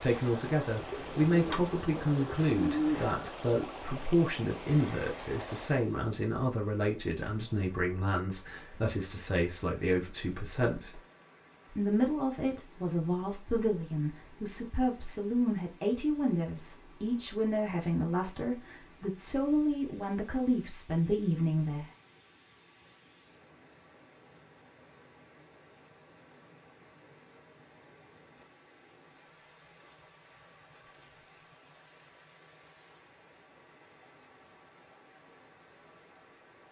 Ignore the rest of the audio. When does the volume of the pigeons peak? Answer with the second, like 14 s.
3 s.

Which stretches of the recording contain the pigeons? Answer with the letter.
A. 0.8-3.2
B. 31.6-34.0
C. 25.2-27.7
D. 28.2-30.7
A.